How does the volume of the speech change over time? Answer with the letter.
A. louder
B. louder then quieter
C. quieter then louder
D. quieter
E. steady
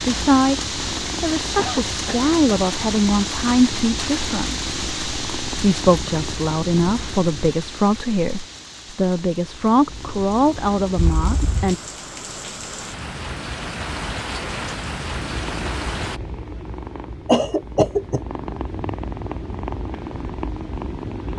E.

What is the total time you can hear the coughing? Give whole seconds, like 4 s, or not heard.
2 s.